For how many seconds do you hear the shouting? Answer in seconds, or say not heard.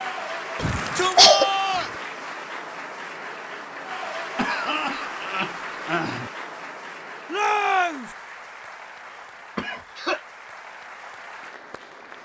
2 s.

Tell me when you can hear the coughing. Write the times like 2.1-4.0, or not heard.
0.7-1.5, 4.3-6.3, 9.1-10.2.